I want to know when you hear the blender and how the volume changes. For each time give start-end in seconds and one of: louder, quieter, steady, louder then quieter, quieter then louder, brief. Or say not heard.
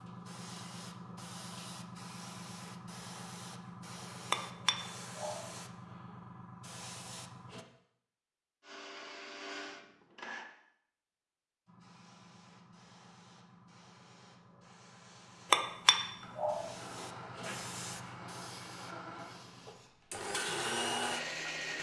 8.6-10.4 brief
16.2-21.7 louder.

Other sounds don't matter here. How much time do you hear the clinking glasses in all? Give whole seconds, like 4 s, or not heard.
2 s.